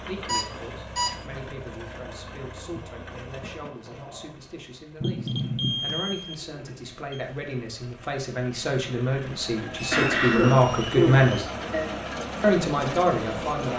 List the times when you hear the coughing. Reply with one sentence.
The coughing can be heard from 9.9 to 11.9 s.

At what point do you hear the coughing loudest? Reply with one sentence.
The volume of the coughing peaks at 10 seconds.